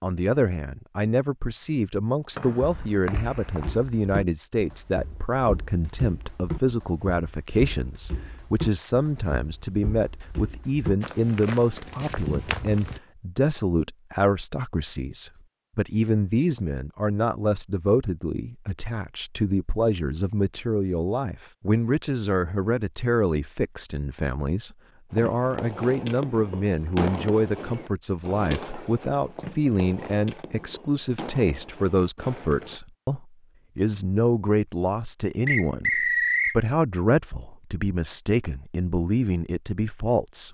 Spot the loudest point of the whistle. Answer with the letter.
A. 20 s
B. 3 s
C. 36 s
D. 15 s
C.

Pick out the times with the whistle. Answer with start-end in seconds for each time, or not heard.
2.4-3.7, 35.5-36.6.